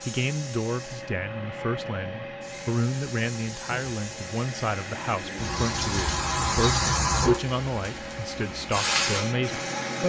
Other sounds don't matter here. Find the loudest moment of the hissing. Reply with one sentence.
The loudest moment of the hissing is at 7 seconds.